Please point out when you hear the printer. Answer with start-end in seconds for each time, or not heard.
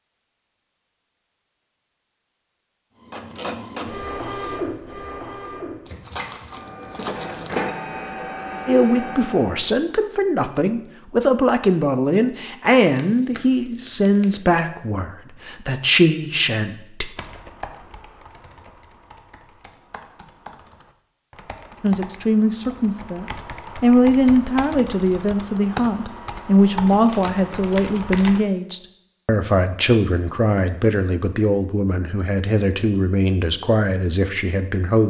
3.0-9.7.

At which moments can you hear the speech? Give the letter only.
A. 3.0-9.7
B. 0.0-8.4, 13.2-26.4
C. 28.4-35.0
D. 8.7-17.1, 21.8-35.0
D.